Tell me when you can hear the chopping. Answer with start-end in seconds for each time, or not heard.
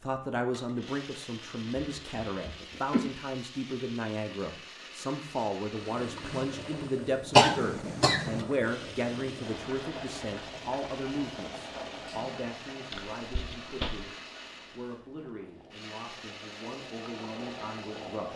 not heard.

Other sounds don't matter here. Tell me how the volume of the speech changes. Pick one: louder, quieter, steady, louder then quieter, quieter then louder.
quieter.